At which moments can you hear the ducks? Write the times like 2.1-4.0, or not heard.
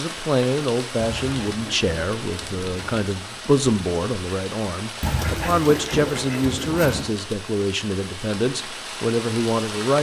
0.9-3.0, 5.0-7.0.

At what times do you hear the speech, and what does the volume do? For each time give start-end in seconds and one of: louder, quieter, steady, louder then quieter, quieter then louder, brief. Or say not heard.
0.0-9.9 steady.